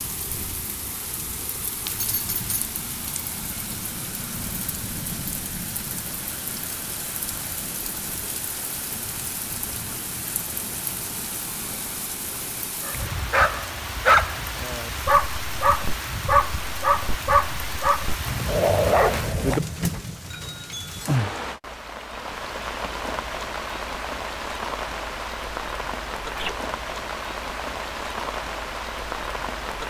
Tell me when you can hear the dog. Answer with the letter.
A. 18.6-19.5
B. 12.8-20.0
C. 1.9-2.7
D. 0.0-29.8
B.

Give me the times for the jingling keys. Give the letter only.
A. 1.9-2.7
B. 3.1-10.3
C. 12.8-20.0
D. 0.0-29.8
A.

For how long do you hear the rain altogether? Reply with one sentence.
You can hear the rain for 30 seconds altogether.